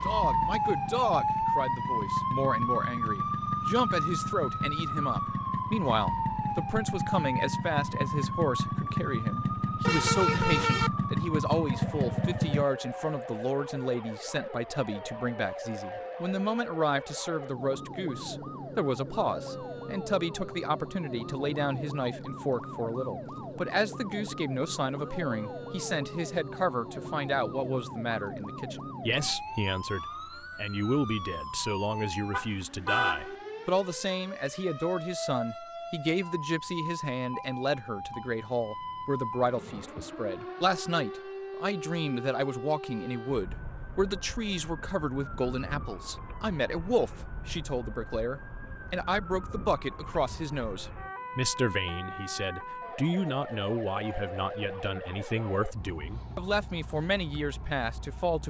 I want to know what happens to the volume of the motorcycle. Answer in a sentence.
The loudness of the motorcycle goes up.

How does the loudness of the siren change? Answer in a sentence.
The volume of the siren goes down.